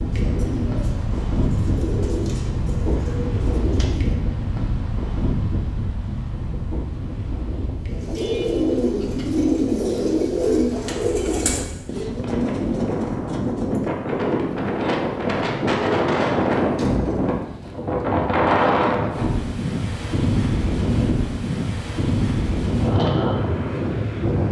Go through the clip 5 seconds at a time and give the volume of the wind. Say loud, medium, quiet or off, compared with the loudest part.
medium, medium, medium, loud, loud.